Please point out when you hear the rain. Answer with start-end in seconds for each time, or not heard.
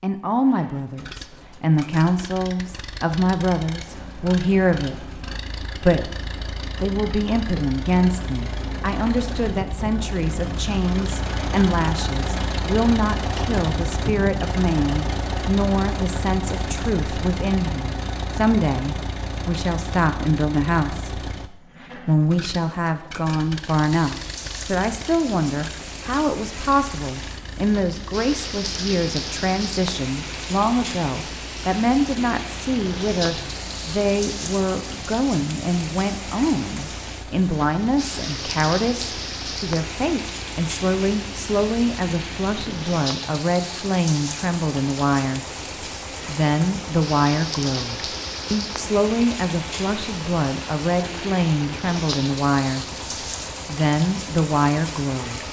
23.6-55.4.